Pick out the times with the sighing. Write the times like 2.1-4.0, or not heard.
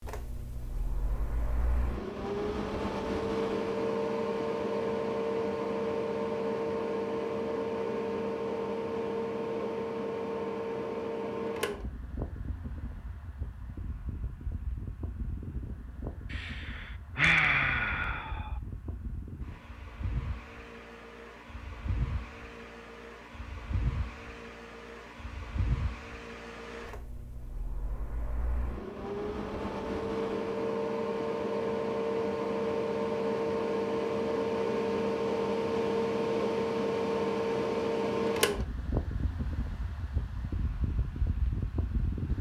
16.3-18.5.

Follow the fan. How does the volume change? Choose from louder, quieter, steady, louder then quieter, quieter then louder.
quieter then louder.